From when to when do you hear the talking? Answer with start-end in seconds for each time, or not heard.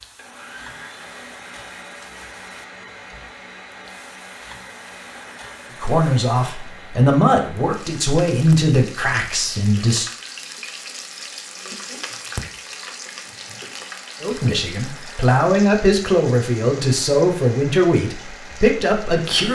5.8-10.1, 14.2-19.4.